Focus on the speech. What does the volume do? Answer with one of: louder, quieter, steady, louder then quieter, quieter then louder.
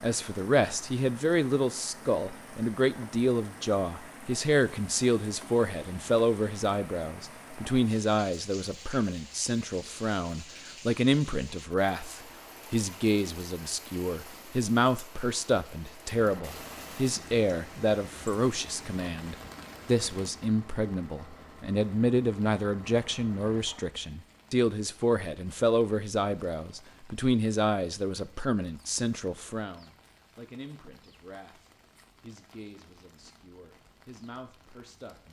quieter.